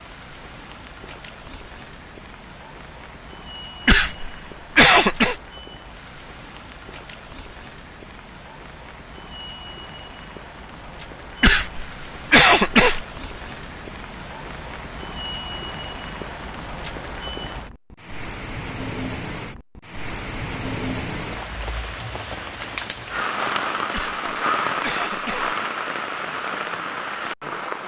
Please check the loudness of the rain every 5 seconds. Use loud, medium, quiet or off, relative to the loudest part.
quiet, quiet, medium, medium, loud, loud.